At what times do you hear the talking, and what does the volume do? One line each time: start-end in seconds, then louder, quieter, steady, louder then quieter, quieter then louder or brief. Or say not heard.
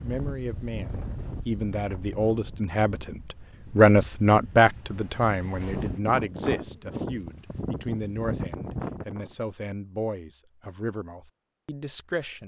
0.0-12.4 louder then quieter.